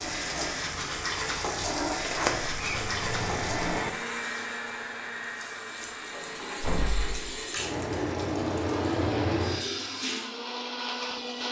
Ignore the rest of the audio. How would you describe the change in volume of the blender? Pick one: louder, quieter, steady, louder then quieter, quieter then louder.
quieter then louder.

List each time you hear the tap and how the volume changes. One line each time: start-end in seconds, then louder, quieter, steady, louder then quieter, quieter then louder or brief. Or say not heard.
0.0-10.3 quieter then louder.